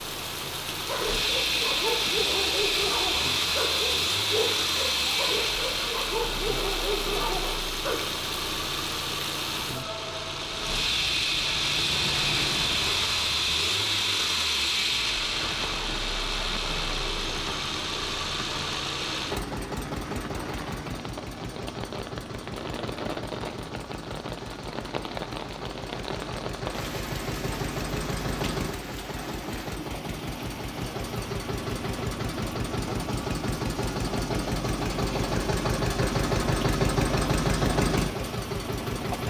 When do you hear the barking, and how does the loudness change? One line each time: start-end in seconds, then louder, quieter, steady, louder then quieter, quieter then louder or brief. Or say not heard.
0.8-8.0 steady.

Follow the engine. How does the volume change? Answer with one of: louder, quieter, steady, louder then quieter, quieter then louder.
quieter then louder.